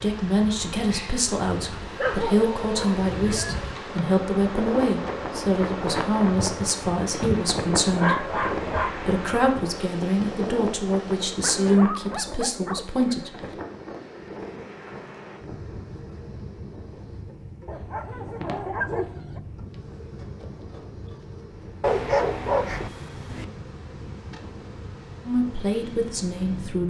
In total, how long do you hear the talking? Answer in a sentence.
You can hear the talking for 15 seconds altogether.